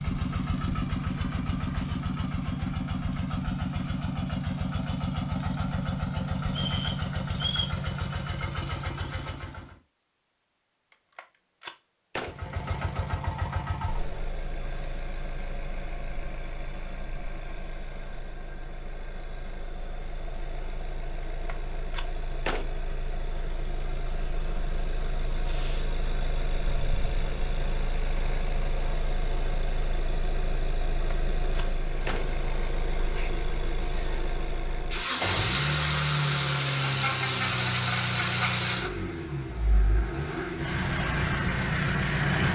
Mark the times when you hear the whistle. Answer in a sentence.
The whistle can be heard from 6.5 to 7.8 s.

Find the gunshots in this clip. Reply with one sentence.
The gunshots can be heard from 11.2 to 12.3 s, from 21.4 to 22.6 s and from 31.1 to 32.2 s.